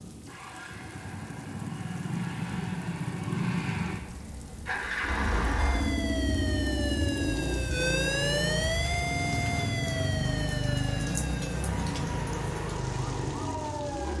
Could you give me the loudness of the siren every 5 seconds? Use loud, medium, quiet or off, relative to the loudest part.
off, loud, medium.